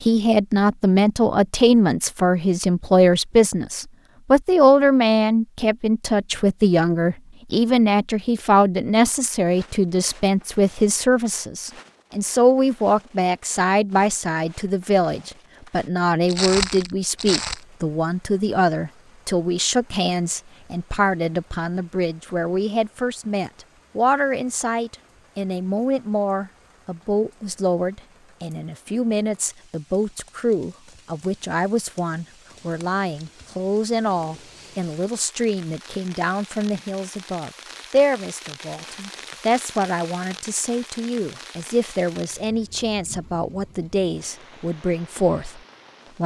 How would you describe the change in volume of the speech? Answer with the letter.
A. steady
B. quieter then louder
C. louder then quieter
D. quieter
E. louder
D.